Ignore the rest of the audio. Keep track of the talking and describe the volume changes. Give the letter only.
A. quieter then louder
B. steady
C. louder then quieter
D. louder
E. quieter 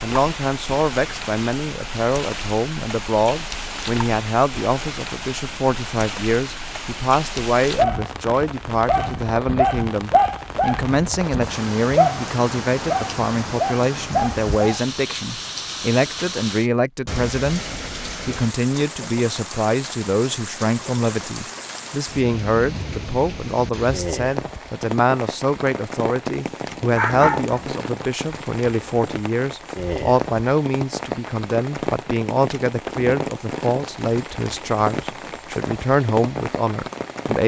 B.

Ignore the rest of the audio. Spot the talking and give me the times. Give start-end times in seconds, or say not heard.
0.0-17.6, 18.2-37.4.